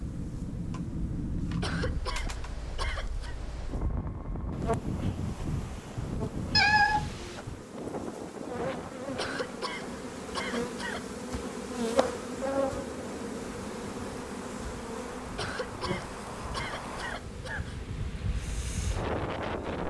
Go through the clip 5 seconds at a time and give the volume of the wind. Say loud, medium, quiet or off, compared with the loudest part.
loud, loud, medium, loud.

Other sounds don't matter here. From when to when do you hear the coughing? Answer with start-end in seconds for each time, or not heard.
1.6-3.4, 9.2-11.1, 15.3-17.8.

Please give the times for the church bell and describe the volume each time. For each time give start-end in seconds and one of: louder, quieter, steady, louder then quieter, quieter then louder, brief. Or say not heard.
not heard.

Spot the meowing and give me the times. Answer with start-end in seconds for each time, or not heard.
6.5-7.4.